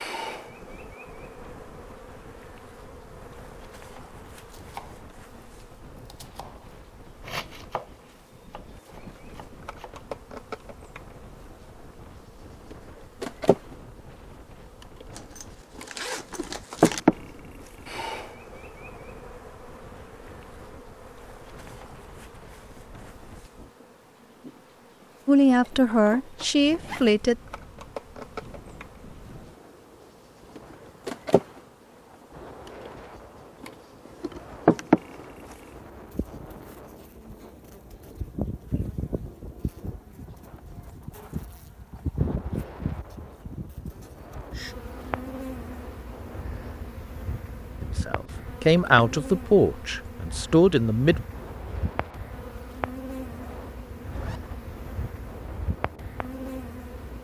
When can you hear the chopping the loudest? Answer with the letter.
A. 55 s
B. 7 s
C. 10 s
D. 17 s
B.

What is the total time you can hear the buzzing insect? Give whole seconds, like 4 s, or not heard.
57 s.